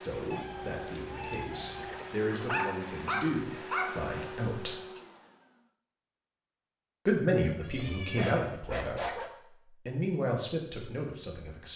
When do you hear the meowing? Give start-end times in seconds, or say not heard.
0.3-2.1, 7.5-8.3.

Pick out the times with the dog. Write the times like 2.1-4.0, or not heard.
2.3-3.9, 8.0-9.3.